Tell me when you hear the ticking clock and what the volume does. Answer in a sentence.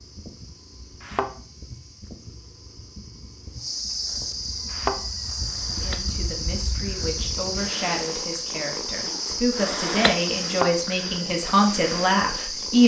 The ticking clock can't be heard in this clip.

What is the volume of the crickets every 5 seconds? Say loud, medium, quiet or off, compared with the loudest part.
medium, loud, loud.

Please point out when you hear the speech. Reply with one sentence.
The speech can be heard from 5.7 to 12.8 s.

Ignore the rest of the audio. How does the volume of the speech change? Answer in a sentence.
The loudness of the speech goes up.